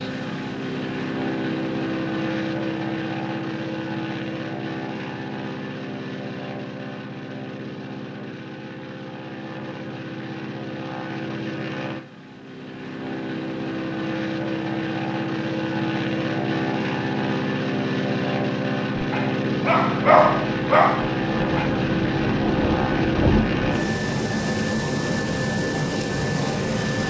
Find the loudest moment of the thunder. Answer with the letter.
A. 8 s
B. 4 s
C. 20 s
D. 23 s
D.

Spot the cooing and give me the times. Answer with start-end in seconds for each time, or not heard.
not heard.